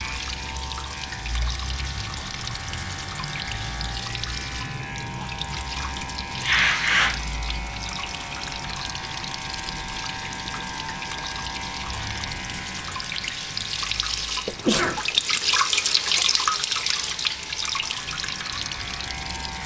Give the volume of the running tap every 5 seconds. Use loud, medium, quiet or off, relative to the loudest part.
medium, medium, medium, loud.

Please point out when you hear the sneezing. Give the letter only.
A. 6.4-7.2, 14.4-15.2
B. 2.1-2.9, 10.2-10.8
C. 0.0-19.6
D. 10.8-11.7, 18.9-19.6
A.